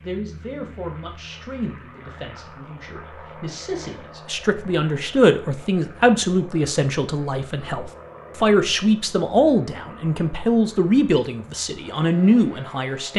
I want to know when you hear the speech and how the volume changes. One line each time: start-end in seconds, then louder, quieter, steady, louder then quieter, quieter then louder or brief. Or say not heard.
0.0-13.1 louder.